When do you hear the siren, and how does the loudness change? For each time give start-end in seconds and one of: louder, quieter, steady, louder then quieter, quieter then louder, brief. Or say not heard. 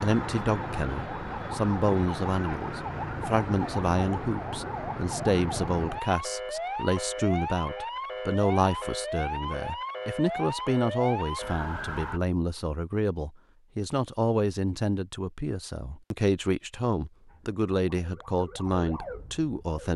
0.0-12.2 steady
17.2-19.9 brief.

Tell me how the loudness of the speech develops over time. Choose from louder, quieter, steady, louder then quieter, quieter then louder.
steady.